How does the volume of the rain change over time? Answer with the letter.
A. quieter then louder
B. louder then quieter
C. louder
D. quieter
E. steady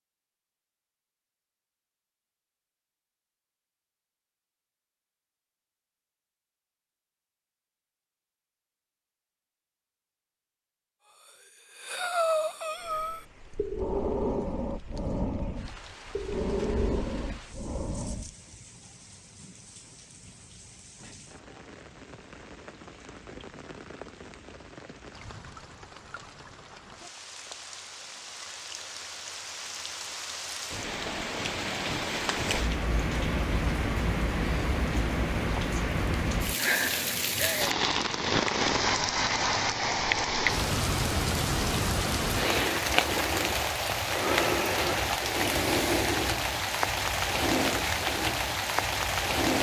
C.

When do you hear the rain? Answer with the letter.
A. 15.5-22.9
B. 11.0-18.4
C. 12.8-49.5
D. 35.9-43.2
C.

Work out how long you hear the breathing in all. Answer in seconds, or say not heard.
7 s.